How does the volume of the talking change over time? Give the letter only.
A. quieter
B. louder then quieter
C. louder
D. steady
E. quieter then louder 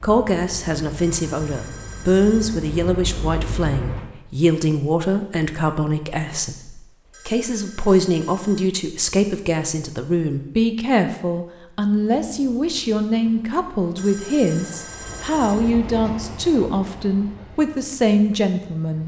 D.